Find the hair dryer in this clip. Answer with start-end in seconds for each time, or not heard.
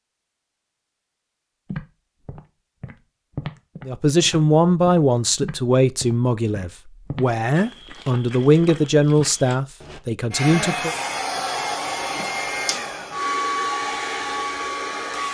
10.3-15.3.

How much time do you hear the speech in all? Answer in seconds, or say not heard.
7 s.